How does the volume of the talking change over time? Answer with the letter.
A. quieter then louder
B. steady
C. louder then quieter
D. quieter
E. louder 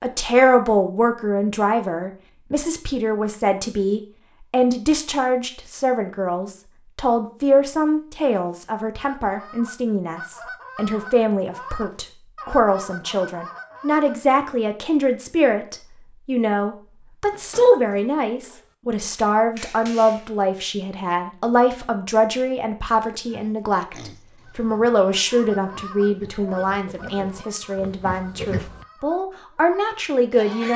B.